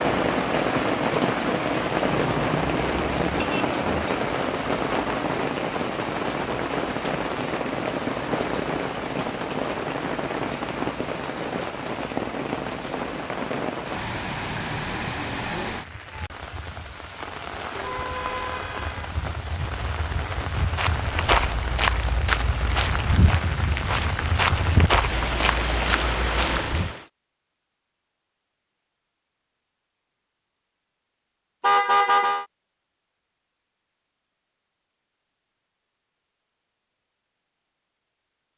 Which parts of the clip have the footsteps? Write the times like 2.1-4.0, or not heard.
20.8-26.9.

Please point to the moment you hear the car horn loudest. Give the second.
32 s.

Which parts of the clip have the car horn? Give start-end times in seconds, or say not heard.
2.0-4.1, 17.8-19.1, 31.6-32.5.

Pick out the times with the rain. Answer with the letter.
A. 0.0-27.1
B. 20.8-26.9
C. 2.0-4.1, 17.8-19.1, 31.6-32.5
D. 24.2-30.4
A.